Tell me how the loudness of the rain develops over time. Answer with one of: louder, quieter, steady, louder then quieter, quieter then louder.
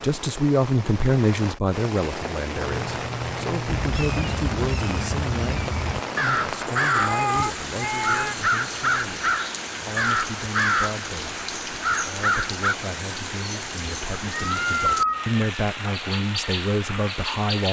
steady.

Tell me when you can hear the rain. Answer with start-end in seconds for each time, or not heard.
0.0-17.6.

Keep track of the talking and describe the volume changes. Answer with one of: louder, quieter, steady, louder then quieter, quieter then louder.
quieter then louder.